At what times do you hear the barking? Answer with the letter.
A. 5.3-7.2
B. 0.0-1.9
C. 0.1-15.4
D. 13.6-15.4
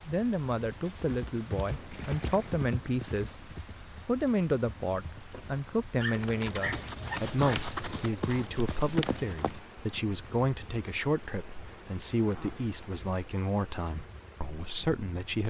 A.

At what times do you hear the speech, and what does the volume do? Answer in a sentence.
The speech can be heard from 0.1 to 15.4 s, at a steady volume.